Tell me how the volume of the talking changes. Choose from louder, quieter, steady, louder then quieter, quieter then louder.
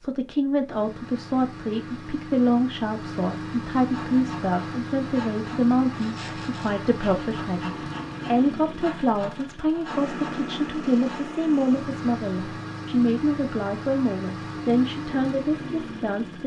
steady.